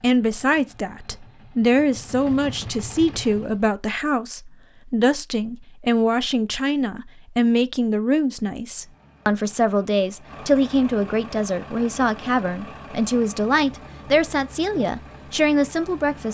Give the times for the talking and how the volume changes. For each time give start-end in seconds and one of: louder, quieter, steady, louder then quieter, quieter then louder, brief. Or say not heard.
0.0-16.2 steady.